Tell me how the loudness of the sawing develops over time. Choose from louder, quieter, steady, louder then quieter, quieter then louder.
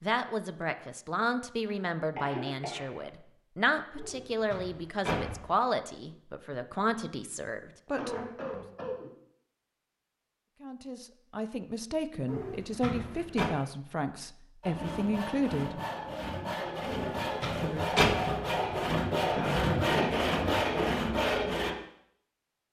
louder.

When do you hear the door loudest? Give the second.
18 s.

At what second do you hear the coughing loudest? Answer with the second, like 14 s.
20 s.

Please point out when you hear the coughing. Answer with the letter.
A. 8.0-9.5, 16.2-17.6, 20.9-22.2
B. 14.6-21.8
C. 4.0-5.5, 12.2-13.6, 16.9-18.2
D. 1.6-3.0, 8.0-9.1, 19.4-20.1
D.